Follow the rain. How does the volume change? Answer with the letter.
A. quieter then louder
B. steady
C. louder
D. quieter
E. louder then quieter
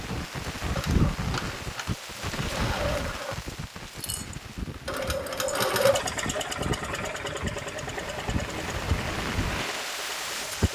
A.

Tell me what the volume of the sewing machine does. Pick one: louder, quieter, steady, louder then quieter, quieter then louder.
louder then quieter.